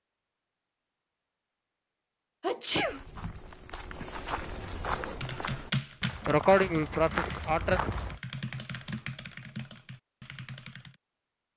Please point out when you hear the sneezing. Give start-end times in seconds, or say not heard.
2.4-3.0, 6.2-7.8.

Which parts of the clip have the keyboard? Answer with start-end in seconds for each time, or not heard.
5.0-11.0.